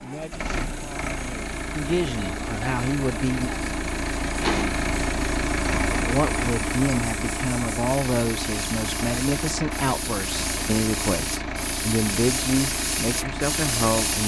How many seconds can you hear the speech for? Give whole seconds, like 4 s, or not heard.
12 s.